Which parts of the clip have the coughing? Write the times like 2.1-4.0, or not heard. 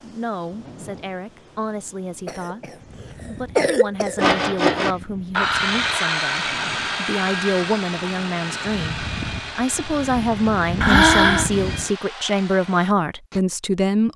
2.2-4.2, 10.8-11.5.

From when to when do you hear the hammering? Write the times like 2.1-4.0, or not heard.
not heard.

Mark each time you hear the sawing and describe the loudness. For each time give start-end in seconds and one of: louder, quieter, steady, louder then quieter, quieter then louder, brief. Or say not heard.
4.2-13.4 quieter.